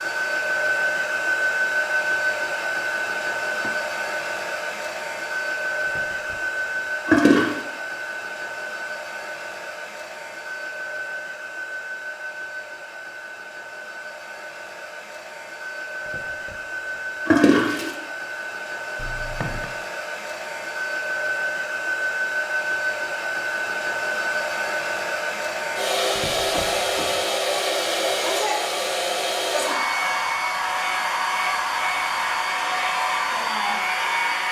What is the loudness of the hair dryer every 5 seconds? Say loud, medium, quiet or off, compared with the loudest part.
loud, medium, medium, medium, loud, loud, loud.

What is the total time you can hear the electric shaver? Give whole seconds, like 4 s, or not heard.
not heard.